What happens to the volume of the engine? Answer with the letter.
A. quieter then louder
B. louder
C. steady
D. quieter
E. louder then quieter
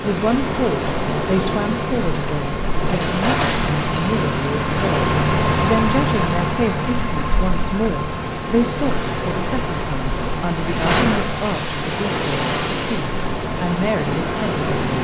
E.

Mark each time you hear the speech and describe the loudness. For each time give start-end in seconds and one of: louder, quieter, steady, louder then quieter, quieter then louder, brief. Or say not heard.
0.0-14.7 steady.